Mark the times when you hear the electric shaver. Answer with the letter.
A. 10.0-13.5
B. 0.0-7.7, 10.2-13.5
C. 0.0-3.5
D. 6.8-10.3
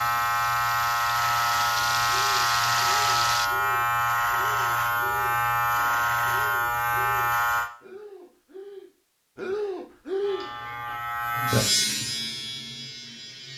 B.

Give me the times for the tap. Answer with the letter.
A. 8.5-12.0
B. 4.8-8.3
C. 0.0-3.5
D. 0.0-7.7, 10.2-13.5
C.